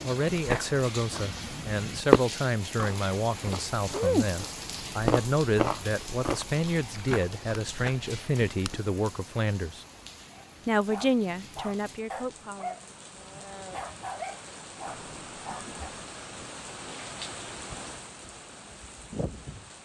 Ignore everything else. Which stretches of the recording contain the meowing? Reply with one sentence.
The meowing can be heard from 14.8 to 16.1 s.